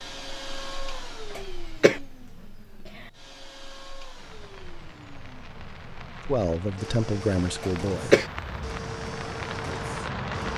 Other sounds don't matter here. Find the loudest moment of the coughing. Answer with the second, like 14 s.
8 s.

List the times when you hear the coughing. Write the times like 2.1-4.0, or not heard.
1.4-2.0, 7.6-8.2.